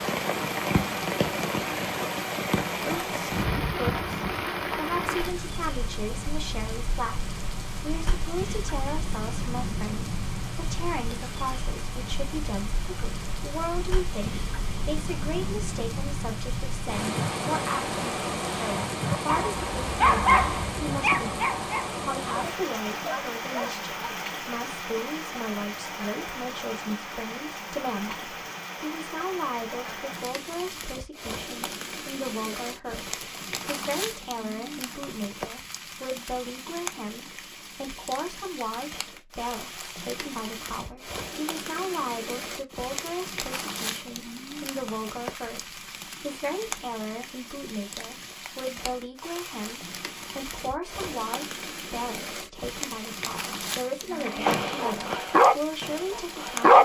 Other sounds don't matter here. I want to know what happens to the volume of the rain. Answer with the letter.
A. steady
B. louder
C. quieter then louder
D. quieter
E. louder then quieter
D.